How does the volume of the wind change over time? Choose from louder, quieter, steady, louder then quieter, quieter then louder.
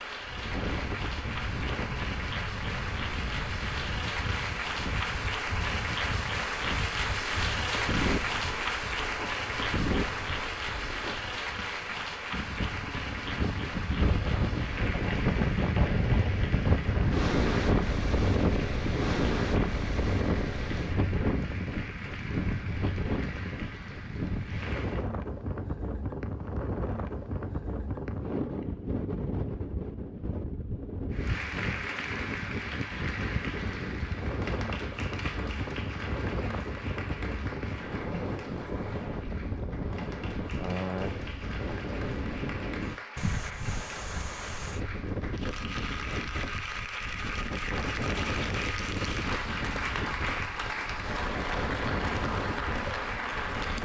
louder then quieter.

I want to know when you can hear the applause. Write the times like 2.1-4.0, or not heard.
0.0-25.1, 31.1-53.8.